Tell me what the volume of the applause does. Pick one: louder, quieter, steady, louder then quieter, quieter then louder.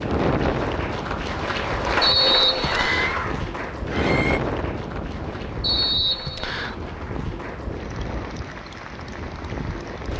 quieter.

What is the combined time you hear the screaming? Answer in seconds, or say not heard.
2 s.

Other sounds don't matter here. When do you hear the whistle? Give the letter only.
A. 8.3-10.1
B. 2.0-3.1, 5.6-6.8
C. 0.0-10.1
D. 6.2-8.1
B.